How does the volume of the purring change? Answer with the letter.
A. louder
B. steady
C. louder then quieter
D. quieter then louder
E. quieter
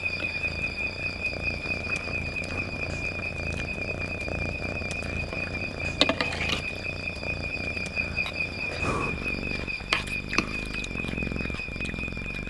B.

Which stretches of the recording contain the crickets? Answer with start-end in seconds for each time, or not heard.
0.0-12.4.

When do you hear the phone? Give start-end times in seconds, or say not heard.
not heard.